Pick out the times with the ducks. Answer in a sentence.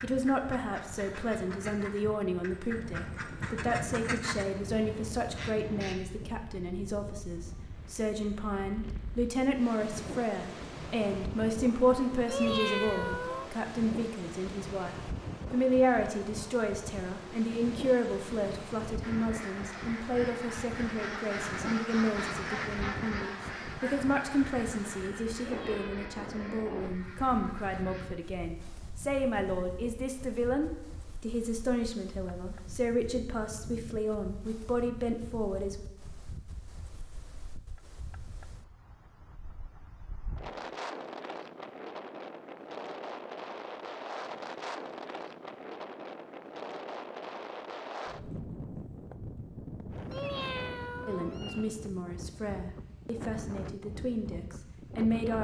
The ducks can be heard from 0.0 to 6.0 s and from 19.0 to 28.1 s.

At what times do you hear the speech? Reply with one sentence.
The speech can be heard from 0.0 to 35.8 s and from 51.0 to 55.3 s.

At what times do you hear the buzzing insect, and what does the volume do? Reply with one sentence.
The buzzing insect can't be heard in this clip.